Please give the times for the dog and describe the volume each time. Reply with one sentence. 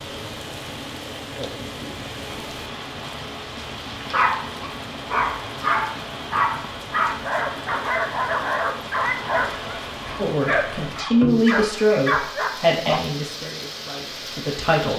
The dog can be heard from 3.9 to 13.0 s, at a steady volume.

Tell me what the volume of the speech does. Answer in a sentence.
The loudness of the speech goes down.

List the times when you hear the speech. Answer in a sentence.
The speech can be heard from 10.2 to 14.9 s.